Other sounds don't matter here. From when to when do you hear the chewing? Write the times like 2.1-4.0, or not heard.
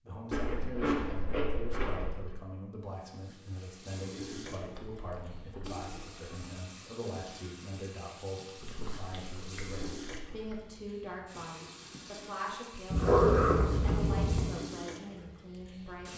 0.3-2.4, 4.5-6.5, 8.6-10.6, 12.9-14.5.